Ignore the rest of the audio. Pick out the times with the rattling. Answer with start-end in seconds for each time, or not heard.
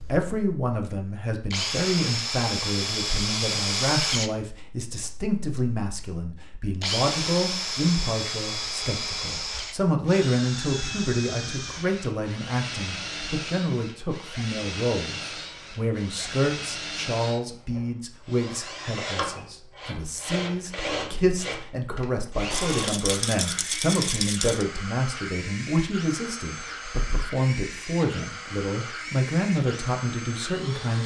22.5-24.6.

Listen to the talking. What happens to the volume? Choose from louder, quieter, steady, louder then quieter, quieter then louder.
steady.